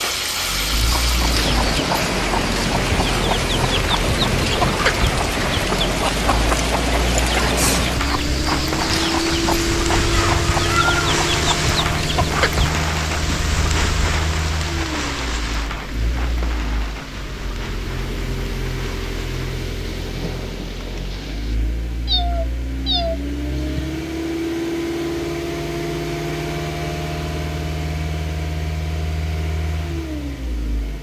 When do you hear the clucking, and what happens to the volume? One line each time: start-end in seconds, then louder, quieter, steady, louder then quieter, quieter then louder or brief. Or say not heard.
0.8-12.7 steady.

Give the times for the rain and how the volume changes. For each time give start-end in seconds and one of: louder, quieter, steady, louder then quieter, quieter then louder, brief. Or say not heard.
0.0-21.6 quieter.